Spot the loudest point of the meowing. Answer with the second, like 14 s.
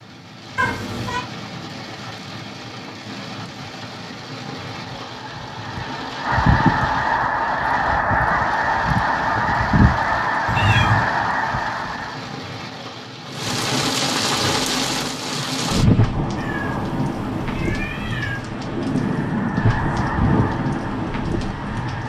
11 s.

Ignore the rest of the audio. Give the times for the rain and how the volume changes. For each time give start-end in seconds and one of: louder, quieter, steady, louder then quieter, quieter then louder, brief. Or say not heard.
0.0-22.0 louder.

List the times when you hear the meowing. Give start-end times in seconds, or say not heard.
0.6-1.2, 10.4-11.1, 16.4-18.4.